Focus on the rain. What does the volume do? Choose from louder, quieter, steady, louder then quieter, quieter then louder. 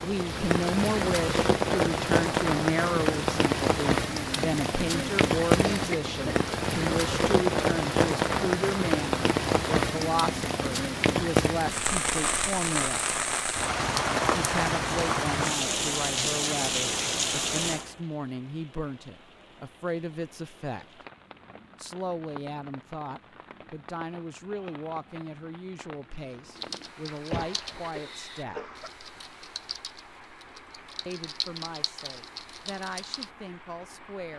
quieter.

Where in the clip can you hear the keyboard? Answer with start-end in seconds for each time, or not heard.
26.6-33.3.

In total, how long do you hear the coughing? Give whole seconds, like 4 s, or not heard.
3 s.